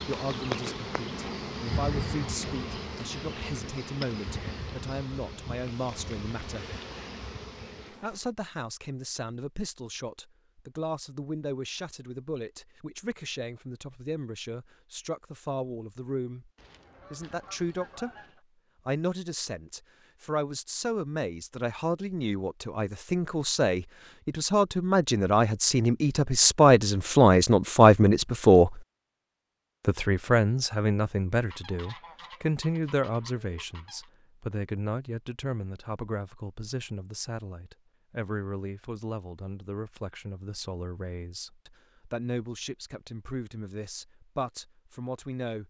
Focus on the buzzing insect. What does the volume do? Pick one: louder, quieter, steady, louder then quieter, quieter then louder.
quieter.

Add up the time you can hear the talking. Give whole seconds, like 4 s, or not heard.
42 s.